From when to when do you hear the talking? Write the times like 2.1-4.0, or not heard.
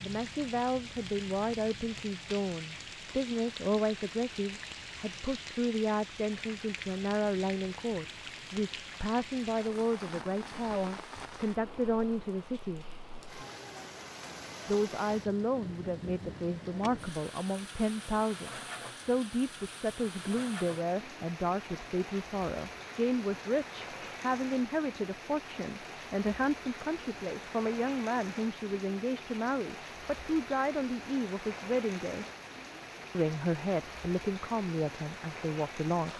0.0-12.8, 14.7-32.2, 33.1-36.1.